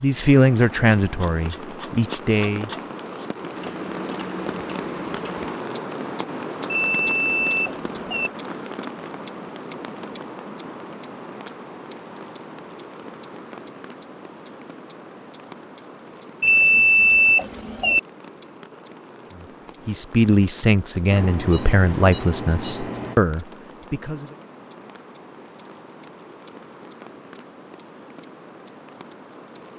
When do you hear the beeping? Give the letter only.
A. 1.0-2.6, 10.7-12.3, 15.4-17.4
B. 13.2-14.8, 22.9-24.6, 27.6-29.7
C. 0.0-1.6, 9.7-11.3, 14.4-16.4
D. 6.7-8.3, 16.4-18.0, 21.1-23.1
D.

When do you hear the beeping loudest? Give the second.
17 s.